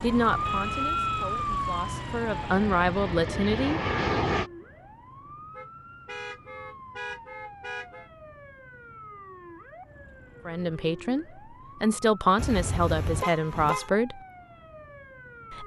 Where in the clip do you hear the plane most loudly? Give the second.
4 s.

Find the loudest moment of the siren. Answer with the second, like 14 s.
1 s.